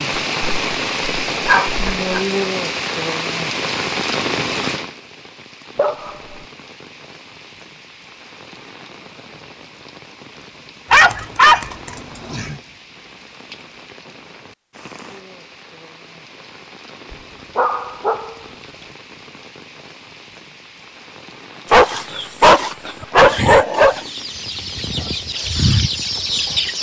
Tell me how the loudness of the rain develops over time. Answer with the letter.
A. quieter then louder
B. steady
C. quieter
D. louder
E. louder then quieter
C.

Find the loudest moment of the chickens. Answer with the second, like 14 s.
26 s.